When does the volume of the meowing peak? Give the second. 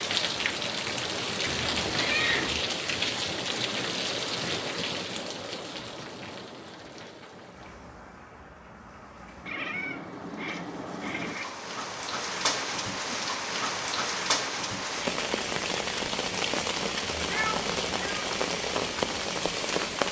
2 s.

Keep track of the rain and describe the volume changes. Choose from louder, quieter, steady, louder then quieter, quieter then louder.
quieter then louder.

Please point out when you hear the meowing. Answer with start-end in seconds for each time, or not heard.
1.4-2.6, 9.4-11.5, 17.2-18.3.